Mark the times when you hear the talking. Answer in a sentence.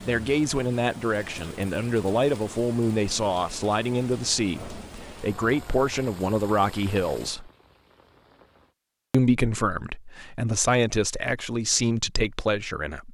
The talking can be heard from 0.1 to 7.5 s and from 9.1 to 13.0 s.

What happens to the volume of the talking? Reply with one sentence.
The loudness of the talking stays about the same.